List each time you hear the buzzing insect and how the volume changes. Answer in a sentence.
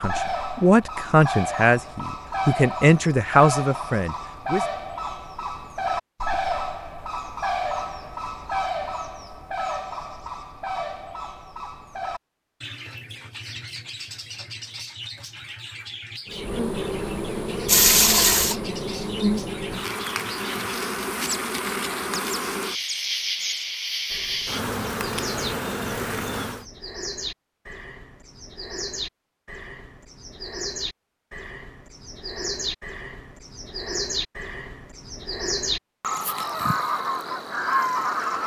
You can hear the buzzing insect from 16.2 to 26.6 s, at a steady volume.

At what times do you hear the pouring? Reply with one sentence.
The pouring can be heard from 17.6 to 18.6 s.